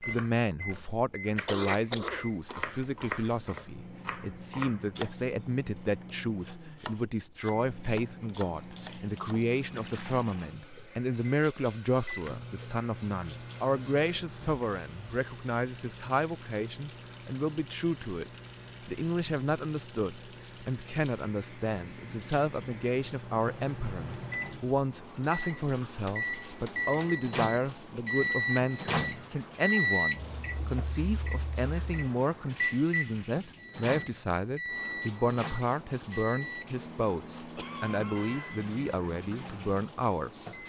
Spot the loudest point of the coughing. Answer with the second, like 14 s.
2 s.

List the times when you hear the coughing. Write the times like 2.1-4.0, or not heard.
1.4-3.4, 37.5-38.7.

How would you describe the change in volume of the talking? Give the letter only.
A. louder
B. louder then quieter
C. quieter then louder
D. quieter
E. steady
E.